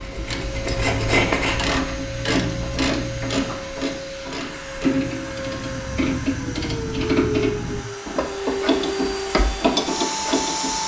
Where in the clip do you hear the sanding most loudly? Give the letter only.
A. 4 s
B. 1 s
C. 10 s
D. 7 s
B.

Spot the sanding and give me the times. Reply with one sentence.
The sanding can be heard from 0.0 to 1.6 s.